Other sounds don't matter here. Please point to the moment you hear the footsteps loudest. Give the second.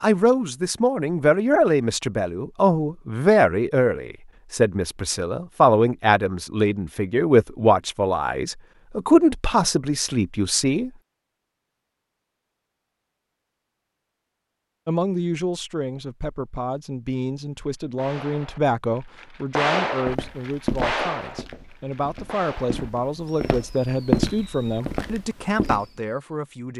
24 s.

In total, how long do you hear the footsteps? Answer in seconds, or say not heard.
6 s.